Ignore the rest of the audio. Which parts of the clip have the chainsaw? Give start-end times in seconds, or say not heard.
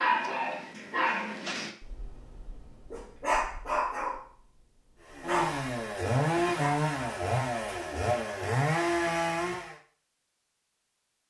5.0-9.8.